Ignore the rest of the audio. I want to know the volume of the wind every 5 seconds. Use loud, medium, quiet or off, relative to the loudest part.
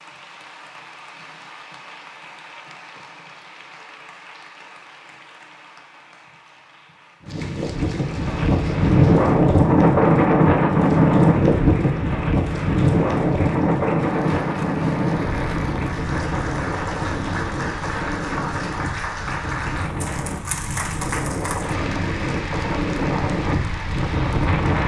off, loud, loud, medium, medium.